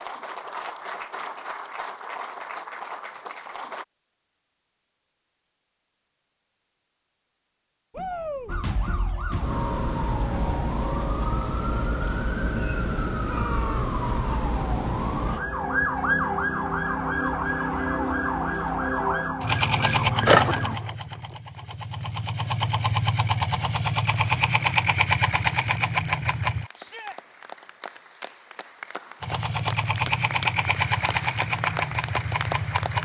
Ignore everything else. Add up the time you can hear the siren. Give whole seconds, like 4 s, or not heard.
12 s.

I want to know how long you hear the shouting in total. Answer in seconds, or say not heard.
2 s.